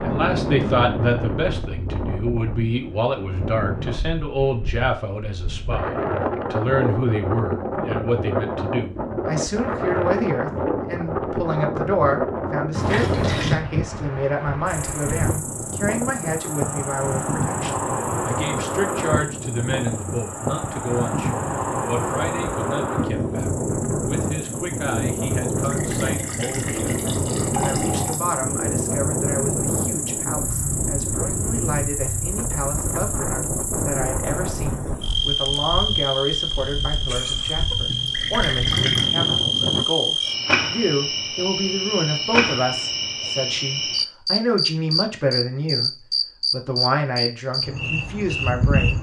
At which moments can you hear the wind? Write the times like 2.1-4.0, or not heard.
0.0-39.9.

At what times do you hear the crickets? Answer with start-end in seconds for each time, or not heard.
14.7-48.9.